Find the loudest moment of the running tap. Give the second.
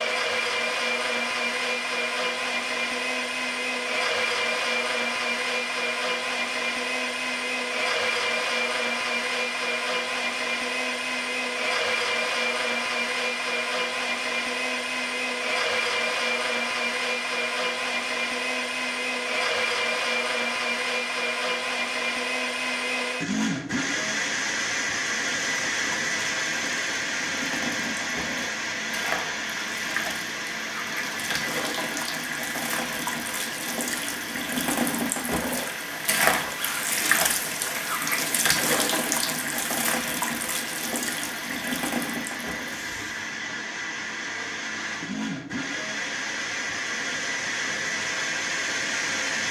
37 s.